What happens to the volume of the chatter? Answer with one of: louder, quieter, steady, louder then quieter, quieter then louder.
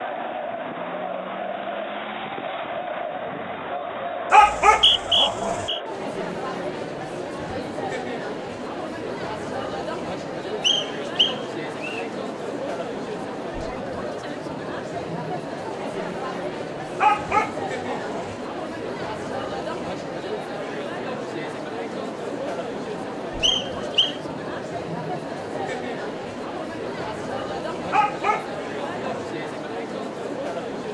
steady.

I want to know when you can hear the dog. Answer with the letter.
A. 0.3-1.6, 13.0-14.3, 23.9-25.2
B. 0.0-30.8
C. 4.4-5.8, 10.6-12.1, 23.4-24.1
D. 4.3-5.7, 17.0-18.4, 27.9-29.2
D.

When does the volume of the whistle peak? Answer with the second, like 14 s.
5 s.